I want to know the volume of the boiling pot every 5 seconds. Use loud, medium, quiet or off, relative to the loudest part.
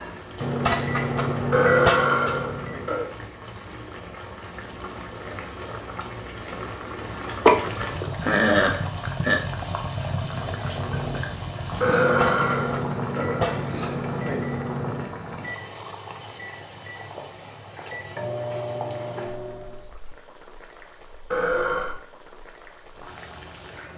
medium, loud, loud, medium, quiet.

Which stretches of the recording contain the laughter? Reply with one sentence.
The laughter can be heard from 7.5 to 9.4 s.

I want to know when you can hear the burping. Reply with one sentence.
The burping can be heard from 1.5 to 3.1 s, from 11.8 to 13.6 s and from 21.3 to 21.9 s.